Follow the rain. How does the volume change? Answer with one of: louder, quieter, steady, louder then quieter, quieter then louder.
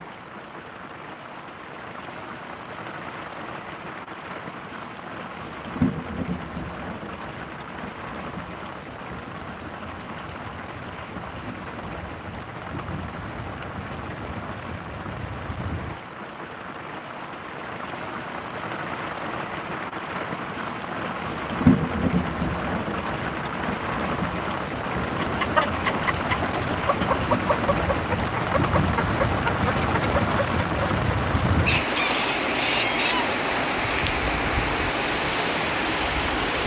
louder.